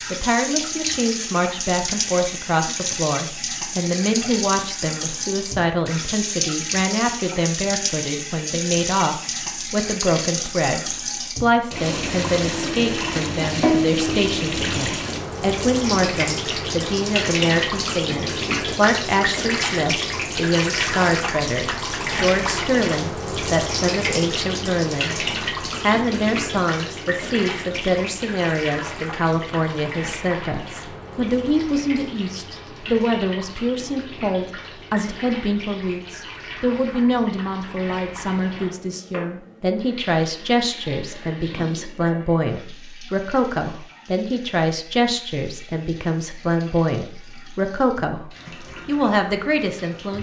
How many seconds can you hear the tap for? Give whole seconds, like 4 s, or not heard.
50 s.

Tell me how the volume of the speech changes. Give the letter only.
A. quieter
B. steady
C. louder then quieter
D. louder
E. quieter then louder
B.